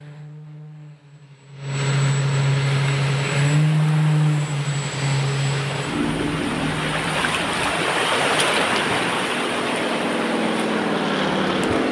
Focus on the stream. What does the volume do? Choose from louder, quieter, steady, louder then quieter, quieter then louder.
louder then quieter.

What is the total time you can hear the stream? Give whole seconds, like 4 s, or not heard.
9 s.